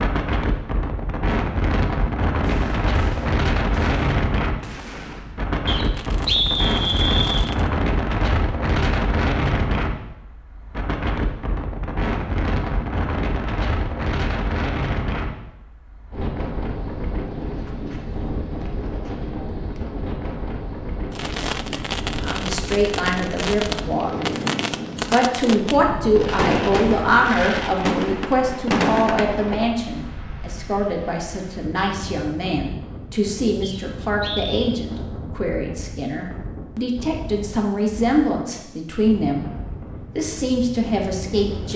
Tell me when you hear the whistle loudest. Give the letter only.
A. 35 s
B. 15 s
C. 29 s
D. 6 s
D.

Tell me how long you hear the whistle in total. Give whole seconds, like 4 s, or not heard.
3 s.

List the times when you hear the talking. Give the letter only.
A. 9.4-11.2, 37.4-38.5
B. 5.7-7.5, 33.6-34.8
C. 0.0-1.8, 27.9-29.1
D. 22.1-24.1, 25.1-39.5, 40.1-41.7
D.